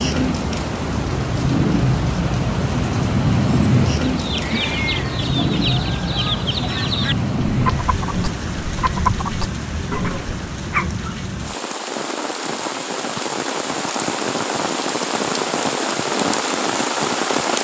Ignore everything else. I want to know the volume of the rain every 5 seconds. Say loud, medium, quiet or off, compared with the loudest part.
loud, loud, medium, loud.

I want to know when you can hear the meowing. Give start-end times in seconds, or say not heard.
4.4-5.2.